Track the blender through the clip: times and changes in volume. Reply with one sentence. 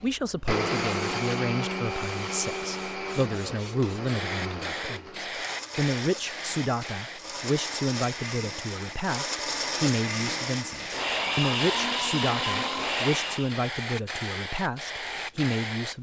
The blender can be heard from 0.0 to 13.6 s, getting quieter then louder.